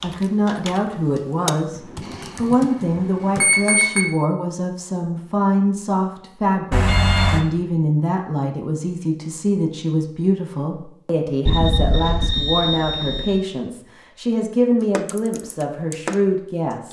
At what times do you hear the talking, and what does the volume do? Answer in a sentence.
The talking can be heard from 0.0 to 16.8 s, at a steady volume.